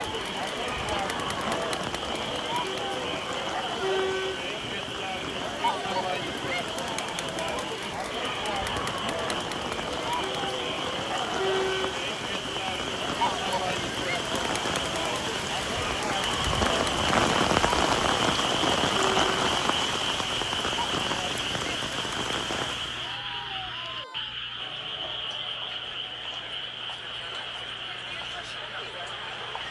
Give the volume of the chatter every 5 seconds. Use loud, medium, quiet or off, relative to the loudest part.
loud, loud, loud, loud, medium, medium.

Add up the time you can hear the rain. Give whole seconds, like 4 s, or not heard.
23 s.